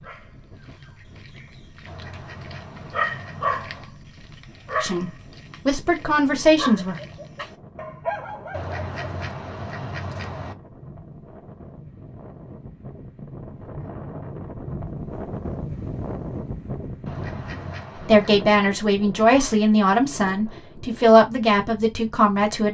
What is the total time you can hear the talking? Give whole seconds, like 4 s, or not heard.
7 s.